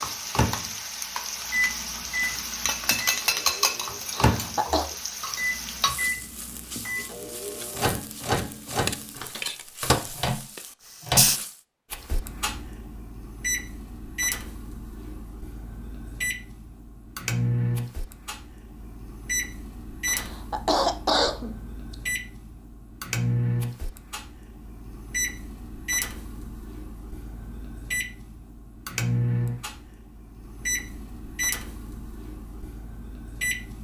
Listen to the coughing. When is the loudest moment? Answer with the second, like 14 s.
21 s.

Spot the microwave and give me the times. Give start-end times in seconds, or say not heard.
0.0-33.7.